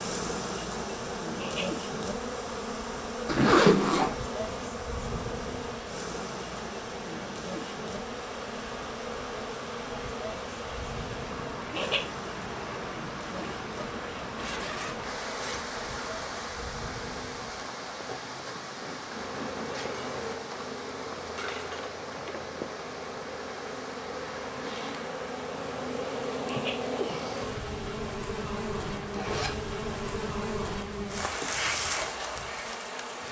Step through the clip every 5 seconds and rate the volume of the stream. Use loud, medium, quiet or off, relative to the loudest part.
medium, loud, loud, loud, loud, medium, medium.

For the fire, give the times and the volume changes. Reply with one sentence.
The fire can't be heard in this clip.